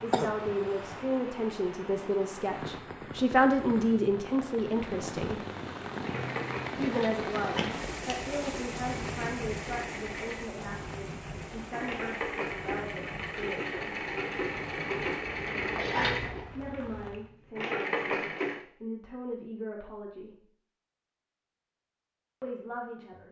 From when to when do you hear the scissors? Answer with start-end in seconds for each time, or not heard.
6.8-8.2, 15.8-16.4.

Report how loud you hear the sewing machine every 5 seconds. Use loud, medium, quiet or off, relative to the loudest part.
off, medium, loud, loud, off.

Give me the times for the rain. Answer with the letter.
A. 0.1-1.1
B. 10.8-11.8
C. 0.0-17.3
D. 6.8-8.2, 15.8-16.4
C.